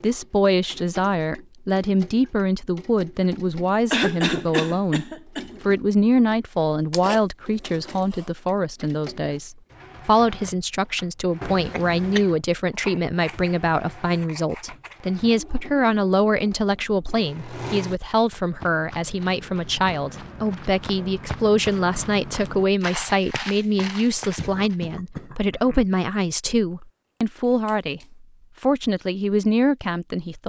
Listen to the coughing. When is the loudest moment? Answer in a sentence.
The loudest moment of the coughing is at 4 seconds.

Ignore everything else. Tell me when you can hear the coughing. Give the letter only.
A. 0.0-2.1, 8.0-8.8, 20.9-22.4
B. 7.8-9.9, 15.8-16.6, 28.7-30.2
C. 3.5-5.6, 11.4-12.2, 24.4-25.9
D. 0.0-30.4
C.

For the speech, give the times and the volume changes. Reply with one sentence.
You can hear the speech from 0.0 to 30.4 s, at a steady volume.